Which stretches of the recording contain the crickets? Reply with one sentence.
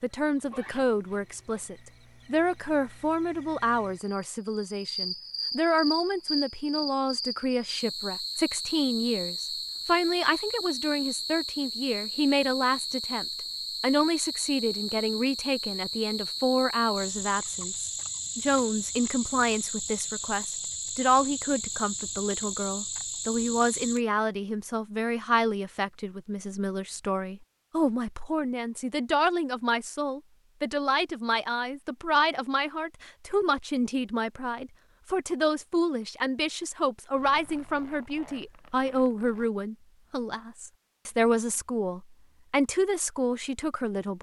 The crickets can be heard from 0.0 to 24.0 s.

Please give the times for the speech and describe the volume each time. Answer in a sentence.
The speech can be heard from 0.0 to 44.1 s, at a steady volume.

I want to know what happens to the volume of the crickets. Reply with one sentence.
The loudness of the crickets goes up.